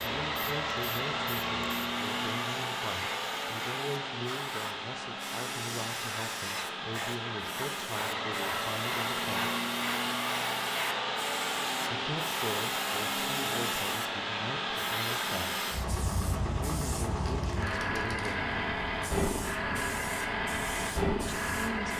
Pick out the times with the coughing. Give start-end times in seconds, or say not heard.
not heard.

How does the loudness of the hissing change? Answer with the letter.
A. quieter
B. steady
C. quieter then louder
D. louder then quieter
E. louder
B.